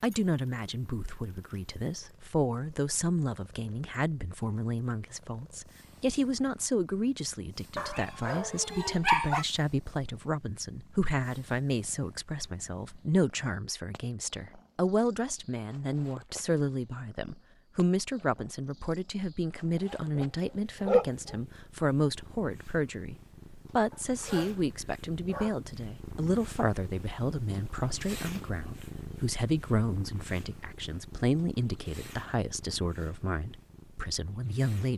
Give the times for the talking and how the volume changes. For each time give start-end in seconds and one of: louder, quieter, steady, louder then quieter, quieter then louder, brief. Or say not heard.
0.0-34.9 steady.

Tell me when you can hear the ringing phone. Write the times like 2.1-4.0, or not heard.
not heard.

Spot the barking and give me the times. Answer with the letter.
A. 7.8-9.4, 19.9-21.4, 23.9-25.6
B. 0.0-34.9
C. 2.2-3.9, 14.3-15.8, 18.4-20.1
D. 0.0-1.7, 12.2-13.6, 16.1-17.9
A.